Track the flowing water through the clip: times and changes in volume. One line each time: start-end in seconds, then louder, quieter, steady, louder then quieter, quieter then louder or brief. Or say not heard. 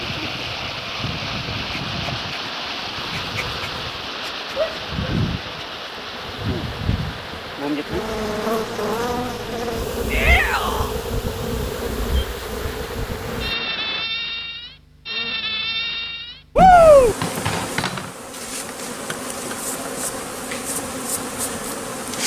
0.0-14.1 quieter.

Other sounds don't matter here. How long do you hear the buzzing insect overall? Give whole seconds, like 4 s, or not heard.
22 s.